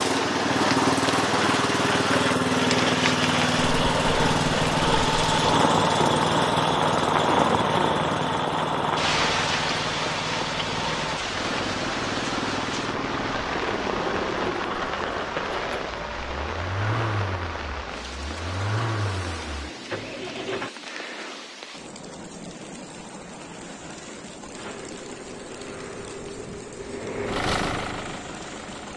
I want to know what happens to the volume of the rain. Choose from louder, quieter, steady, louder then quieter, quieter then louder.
quieter.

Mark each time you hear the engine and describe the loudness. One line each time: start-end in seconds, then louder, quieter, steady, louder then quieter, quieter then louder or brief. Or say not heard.
0.0-20.7 quieter
24.5-28.9 louder then quieter.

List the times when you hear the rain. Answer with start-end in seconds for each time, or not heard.
0.0-28.9.